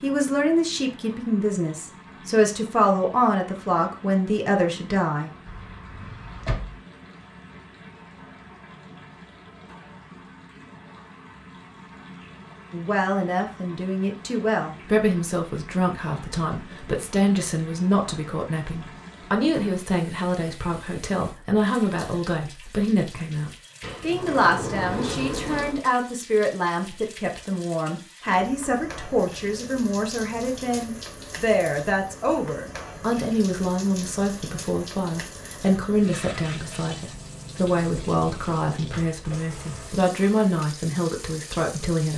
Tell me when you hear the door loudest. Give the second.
25 s.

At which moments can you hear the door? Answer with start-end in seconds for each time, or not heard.
5.5-6.8, 23.8-25.9.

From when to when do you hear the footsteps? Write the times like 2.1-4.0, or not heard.
not heard.